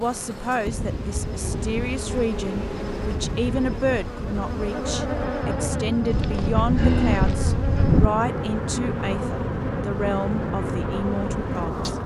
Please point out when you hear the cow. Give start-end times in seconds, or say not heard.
6.1-8.1.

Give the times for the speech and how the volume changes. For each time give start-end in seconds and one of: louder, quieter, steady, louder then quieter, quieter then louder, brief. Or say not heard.
0.0-11.9 steady.